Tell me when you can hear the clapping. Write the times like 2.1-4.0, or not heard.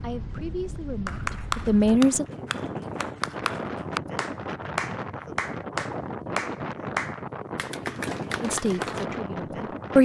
1.1-9.1.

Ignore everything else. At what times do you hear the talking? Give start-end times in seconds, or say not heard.
0.0-2.2, 8.4-9.9.